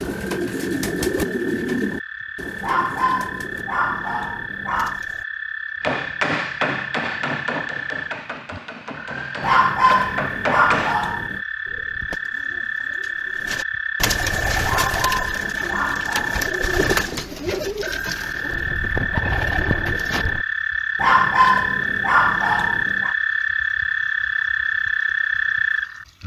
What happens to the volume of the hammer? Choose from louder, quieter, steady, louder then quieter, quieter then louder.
quieter then louder.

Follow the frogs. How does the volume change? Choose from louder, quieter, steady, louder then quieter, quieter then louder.
louder.